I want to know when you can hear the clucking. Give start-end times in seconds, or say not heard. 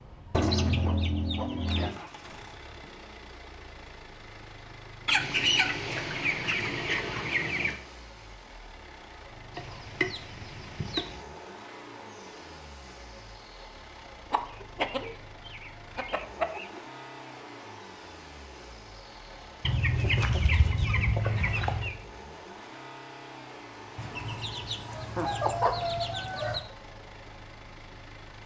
0.3-1.9, 5.0-7.8, 9.6-11.2, 14.3-16.8, 19.6-22.0, 23.9-26.6.